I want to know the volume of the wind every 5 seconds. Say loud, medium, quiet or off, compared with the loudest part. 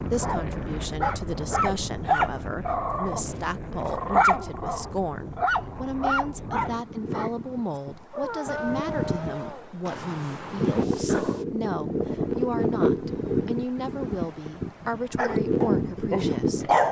medium, medium, loud, loud.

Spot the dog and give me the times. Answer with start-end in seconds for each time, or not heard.
0.1-11.4, 15.2-16.8.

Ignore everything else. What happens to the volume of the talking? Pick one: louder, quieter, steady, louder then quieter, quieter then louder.
steady.